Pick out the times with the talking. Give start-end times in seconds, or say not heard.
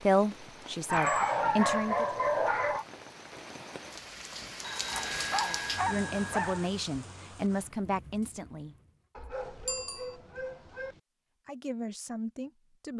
0.0-2.0, 5.4-8.8, 11.4-12.9.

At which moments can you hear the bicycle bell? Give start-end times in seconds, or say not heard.
0.9-1.4, 4.6-6.4, 9.7-10.2.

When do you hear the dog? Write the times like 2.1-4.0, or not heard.
0.8-2.9, 5.2-6.7, 9.2-11.0.